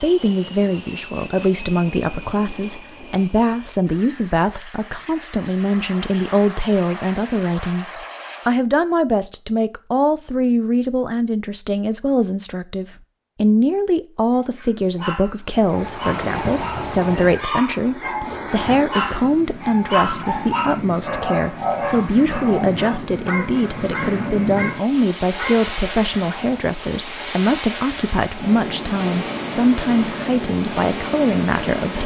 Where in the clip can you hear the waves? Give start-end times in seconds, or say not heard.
15.6-32.0.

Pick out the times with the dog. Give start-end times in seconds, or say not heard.
14.3-25.7.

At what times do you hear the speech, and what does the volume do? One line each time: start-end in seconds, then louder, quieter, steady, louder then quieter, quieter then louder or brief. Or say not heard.
0.0-32.0 steady.